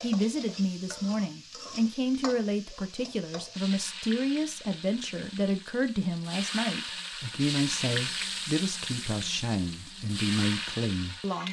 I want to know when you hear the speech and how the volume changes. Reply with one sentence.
The speech can be heard from 0.0 to 11.4 s, at a steady volume.